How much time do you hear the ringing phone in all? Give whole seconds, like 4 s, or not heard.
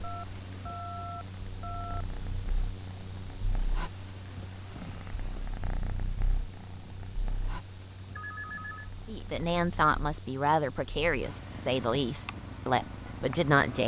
3 s.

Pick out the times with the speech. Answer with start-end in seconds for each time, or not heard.
9.1-13.8.